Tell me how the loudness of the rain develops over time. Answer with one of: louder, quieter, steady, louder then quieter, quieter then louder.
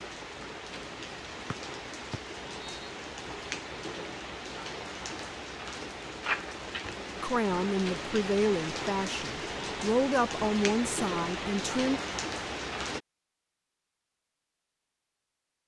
louder.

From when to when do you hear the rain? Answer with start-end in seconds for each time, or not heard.
0.0-13.0.